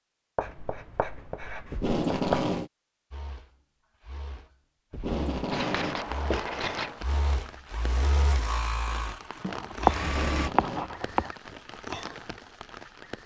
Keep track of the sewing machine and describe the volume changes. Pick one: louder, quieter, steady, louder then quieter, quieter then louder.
louder.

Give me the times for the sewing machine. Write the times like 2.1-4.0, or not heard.
3.1-10.5.